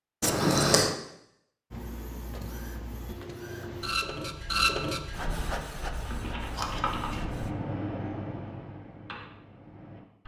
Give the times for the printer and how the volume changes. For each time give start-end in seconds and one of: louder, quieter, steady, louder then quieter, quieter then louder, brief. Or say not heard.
1.7-7.5 louder then quieter.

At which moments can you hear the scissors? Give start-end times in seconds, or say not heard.
0.2-0.9, 5.8-7.5.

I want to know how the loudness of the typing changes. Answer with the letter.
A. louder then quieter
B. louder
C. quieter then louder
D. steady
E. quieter
E.